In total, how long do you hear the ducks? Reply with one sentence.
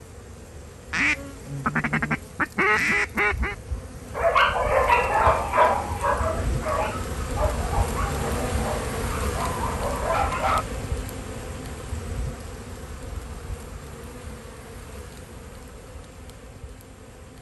You can hear the ducks for 3 seconds altogether.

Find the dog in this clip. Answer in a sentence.
The dog can be heard from 4.2 to 10.7 s.